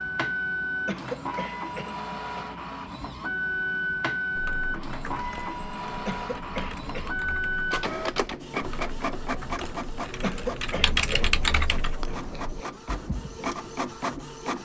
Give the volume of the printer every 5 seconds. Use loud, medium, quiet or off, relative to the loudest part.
loud, loud, medium.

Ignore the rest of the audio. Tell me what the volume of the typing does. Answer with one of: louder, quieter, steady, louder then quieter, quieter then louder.
louder then quieter.